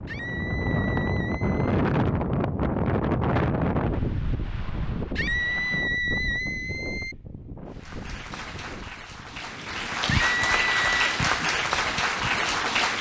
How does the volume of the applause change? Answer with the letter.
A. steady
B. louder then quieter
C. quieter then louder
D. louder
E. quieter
D.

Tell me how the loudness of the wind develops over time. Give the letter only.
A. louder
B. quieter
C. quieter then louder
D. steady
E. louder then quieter
B.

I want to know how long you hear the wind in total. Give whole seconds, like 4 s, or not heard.
13 s.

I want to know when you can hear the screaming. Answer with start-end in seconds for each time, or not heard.
0.1-1.8, 5.2-7.2, 10.1-10.9.